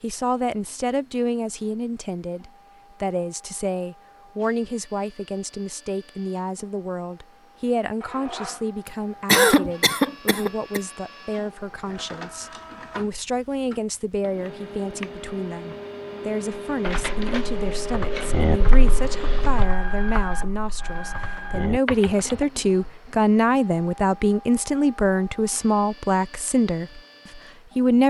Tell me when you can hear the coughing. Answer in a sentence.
You can hear the coughing from 9.2 to 10.8 s.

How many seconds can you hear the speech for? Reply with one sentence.
You can hear the speech for 28 seconds altogether.